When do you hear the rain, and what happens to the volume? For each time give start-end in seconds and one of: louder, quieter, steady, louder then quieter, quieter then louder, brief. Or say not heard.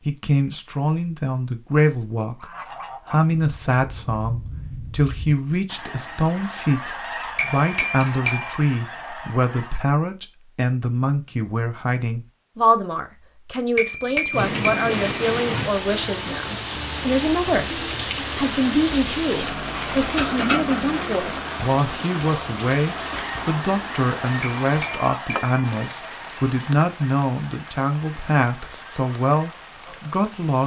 14.3-30.6 quieter.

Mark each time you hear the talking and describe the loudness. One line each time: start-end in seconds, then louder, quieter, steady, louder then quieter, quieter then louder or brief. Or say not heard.
0.1-30.6 steady.